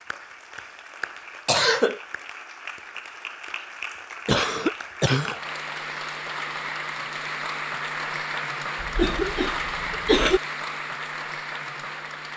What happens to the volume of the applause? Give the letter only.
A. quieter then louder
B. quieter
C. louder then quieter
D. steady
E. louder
E.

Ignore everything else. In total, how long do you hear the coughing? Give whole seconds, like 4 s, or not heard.
3 s.